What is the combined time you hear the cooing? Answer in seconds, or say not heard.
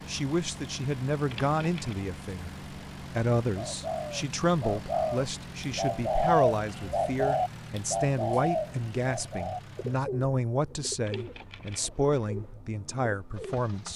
10 s.